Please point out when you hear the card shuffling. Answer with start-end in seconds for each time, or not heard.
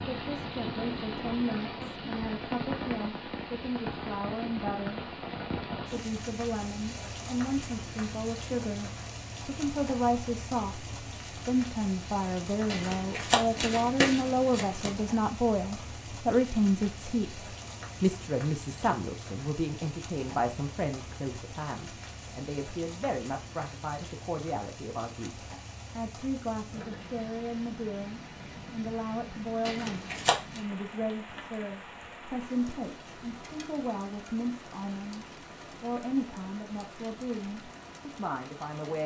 12.7-14.9, 29.6-30.6.